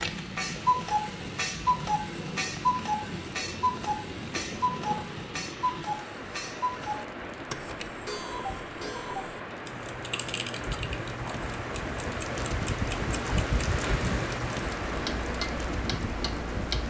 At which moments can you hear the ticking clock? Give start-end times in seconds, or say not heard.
0.0-16.8.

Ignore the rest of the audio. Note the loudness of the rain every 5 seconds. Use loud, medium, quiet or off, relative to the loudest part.
medium, medium, loud, loud.